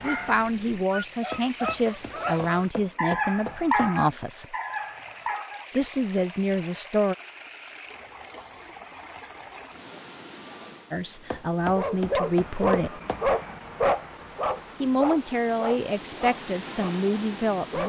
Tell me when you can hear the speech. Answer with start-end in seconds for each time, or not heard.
0.0-4.5, 5.7-7.2, 10.9-13.0, 14.8-17.8.